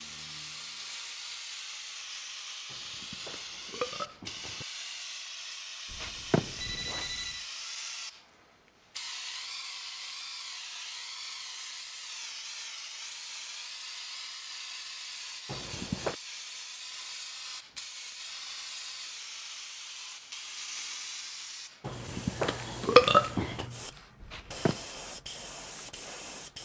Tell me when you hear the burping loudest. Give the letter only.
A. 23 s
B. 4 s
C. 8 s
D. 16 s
A.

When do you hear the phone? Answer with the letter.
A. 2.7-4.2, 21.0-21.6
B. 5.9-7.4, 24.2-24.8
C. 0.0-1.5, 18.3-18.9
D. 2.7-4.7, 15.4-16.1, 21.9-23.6
B.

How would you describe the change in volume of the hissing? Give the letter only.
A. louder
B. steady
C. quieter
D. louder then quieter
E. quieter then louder
B.